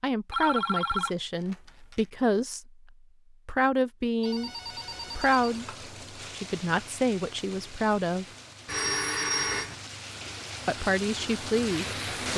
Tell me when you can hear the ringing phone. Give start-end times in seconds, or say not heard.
0.3-2.0, 4.2-5.6, 8.7-9.8.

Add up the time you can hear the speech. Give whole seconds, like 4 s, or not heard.
9 s.